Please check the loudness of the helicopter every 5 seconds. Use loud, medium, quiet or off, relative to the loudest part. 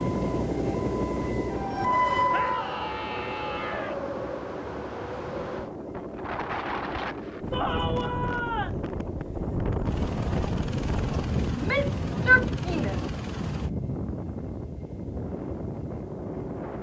loud, medium, medium, medium.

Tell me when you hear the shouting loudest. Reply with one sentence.
The volume of the shouting peaks at 12 seconds.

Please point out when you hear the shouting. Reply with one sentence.
The shouting can be heard from 2.3 to 4.0 s, from 7.5 to 8.8 s and from 11.5 to 13.2 s.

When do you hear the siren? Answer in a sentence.
The siren can be heard from 0.2 to 2.8 s.